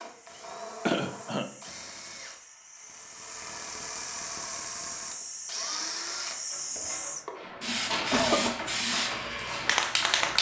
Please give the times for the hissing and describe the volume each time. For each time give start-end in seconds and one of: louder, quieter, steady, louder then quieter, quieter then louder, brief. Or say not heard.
0.0-10.3 louder.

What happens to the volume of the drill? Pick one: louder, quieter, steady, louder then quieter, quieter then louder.
louder.